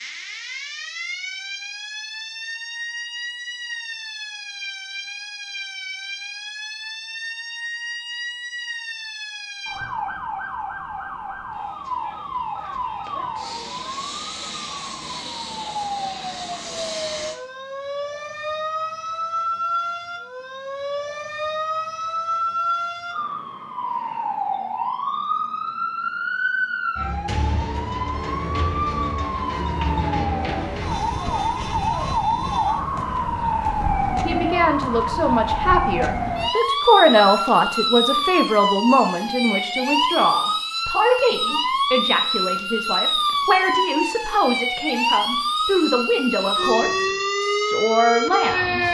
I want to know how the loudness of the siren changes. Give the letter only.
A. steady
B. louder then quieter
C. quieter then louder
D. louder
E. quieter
D.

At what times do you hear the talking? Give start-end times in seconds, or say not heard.
34.2-48.9.